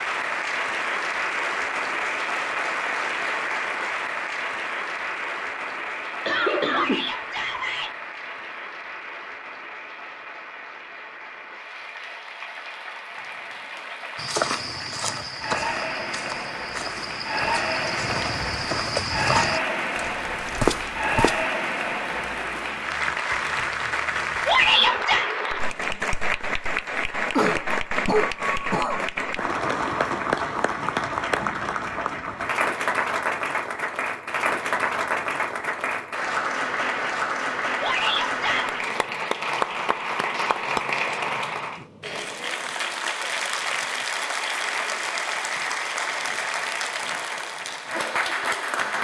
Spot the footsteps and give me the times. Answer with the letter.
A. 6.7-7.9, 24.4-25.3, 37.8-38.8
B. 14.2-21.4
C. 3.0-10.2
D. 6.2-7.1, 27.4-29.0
B.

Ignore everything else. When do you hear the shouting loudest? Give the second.
25 s.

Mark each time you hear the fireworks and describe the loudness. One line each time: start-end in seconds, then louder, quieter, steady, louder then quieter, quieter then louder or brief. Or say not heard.
not heard.